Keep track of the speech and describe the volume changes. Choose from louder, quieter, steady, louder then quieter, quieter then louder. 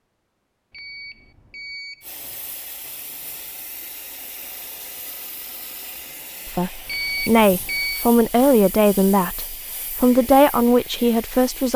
steady.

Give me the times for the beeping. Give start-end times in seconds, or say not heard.
0.7-2.0, 6.8-8.1.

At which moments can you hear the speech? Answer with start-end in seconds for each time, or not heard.
6.5-11.7.